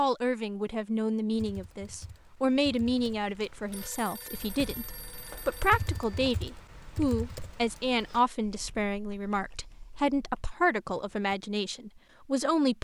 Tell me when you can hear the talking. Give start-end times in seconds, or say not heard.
0.0-12.7.